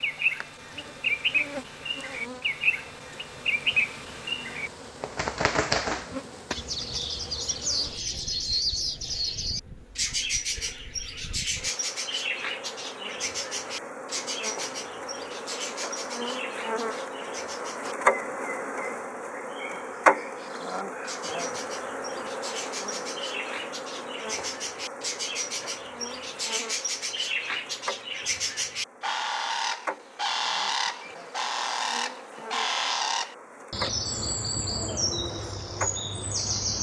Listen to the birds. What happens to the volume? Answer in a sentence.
The loudness of the birds goes down, then up.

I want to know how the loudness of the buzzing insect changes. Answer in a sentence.
The volume of the buzzing insect goes up, then down.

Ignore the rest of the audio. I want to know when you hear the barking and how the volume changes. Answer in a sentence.
The barking can't be heard in this clip.